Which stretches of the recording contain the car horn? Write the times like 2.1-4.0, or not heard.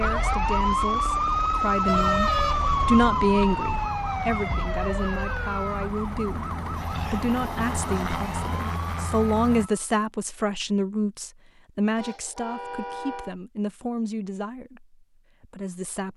1.9-3.6, 11.9-13.3.